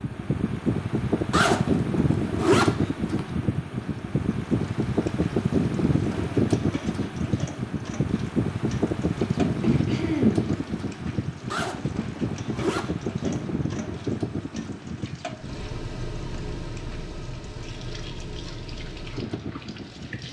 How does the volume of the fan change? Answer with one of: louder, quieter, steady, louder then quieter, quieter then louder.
quieter.